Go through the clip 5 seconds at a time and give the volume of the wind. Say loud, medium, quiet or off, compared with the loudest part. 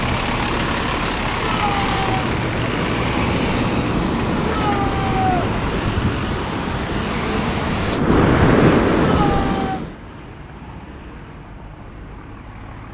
medium, loud, off.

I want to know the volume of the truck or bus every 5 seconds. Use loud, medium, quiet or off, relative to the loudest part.
loud, loud, quiet.